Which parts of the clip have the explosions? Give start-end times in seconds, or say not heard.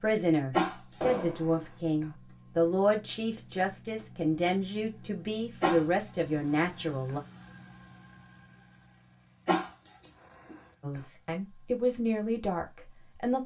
1.0-1.6.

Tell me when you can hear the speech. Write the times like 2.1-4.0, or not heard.
0.0-7.2, 10.8-13.4.